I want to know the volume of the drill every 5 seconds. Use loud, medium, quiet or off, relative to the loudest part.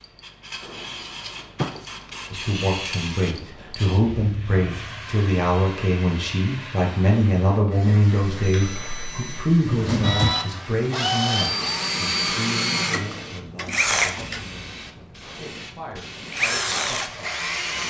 off, off, loud, loud.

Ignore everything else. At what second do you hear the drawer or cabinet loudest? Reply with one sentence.
The volume of the drawer or cabinet peaks at 10 seconds.